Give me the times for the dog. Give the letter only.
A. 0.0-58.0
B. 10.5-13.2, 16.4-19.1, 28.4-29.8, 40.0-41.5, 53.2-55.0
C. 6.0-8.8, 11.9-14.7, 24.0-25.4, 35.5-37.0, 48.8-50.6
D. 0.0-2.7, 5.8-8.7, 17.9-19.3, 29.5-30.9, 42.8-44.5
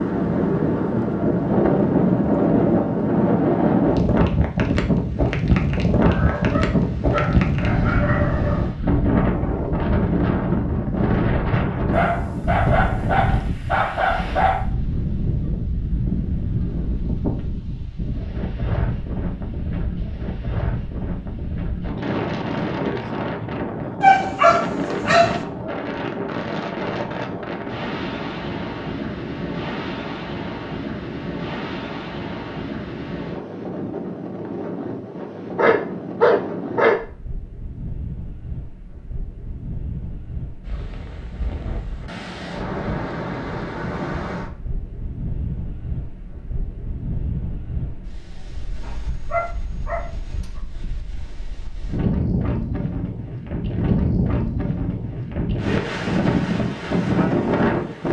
C.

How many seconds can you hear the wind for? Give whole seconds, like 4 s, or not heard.
58 s.